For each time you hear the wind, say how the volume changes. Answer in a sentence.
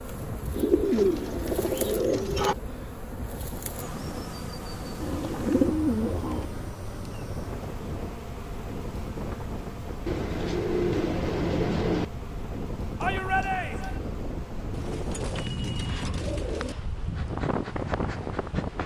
You can hear the wind from 0.0 to 18.8 s, getting louder.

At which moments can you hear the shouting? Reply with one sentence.
The shouting can be heard from 13.0 to 14.0 s.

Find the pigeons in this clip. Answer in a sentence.
The pigeons can be heard from 0.6 to 2.5 s, from 5.0 to 6.5 s, from 10.1 to 12.1 s and from 14.7 to 16.8 s.